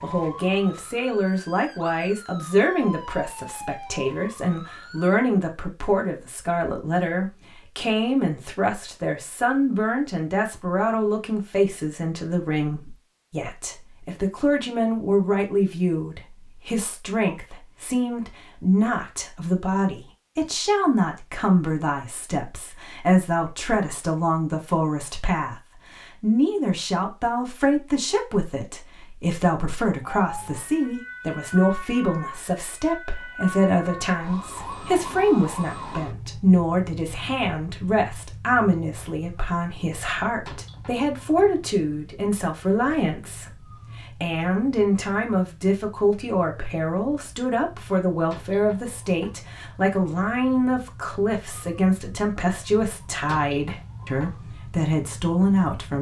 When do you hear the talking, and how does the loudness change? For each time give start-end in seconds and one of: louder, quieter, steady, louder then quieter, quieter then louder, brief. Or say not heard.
0.0-55.9 steady.